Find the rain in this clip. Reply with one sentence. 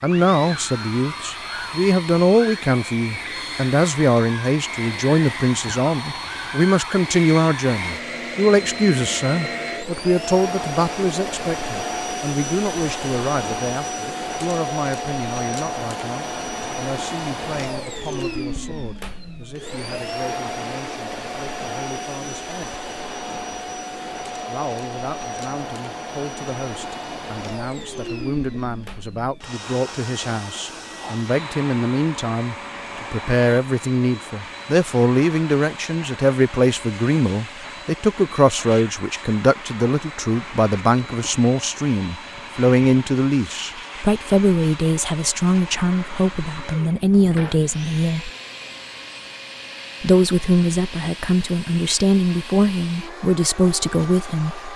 The rain can't be heard in this clip.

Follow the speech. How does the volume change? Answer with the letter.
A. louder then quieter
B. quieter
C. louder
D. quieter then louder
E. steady
D.